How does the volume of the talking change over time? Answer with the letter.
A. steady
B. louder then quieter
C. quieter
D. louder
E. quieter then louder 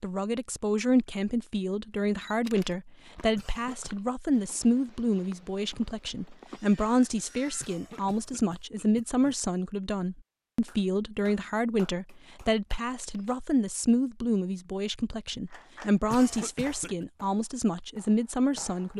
A.